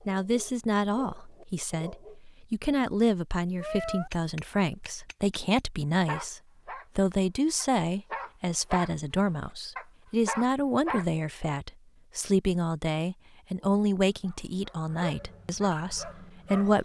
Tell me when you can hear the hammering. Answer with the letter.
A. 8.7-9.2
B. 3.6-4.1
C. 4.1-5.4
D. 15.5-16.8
C.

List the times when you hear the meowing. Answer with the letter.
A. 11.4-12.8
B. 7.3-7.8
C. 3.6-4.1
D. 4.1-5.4
C.